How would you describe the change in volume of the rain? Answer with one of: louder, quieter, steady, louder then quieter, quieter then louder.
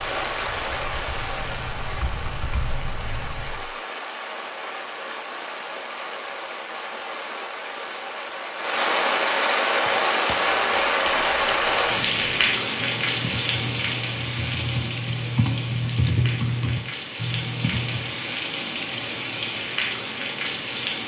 louder then quieter.